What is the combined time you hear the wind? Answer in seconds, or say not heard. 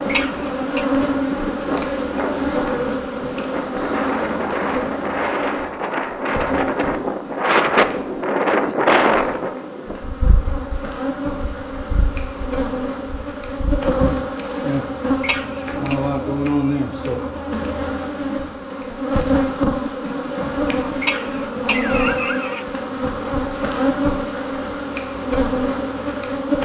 14 s.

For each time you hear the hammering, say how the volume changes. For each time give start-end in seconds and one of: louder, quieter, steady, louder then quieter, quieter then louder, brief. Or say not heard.
not heard.